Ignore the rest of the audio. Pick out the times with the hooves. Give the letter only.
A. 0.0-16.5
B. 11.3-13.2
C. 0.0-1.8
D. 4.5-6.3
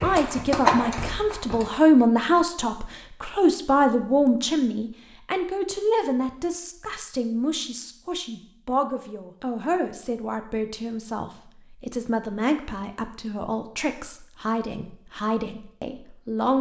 C.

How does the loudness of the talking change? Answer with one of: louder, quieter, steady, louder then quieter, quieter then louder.
quieter.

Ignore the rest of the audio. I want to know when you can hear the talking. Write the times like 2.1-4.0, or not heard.
0.0-16.5.